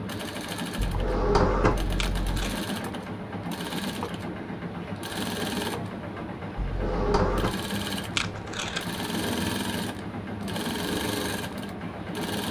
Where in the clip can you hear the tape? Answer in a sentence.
You can hear the tape from 1.9 to 2.6 s and from 8.2 to 9.0 s.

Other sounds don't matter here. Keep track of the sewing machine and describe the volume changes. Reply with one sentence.
The volume of the sewing machine stays about the same.